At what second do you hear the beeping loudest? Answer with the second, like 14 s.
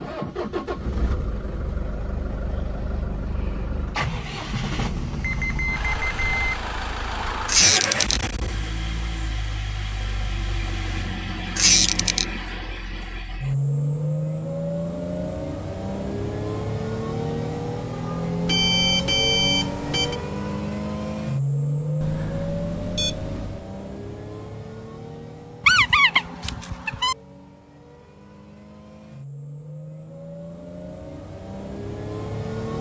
19 s.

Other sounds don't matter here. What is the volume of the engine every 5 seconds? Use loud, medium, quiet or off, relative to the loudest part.
loud, loud, loud, loud, loud, quiet, medium.